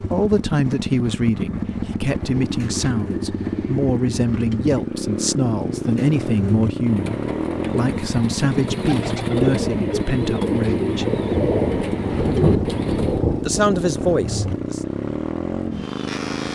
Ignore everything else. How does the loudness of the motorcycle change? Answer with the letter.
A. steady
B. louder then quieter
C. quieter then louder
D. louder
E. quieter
A.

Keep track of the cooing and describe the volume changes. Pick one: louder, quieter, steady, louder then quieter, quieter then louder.
louder.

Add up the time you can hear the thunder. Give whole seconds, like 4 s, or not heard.
4 s.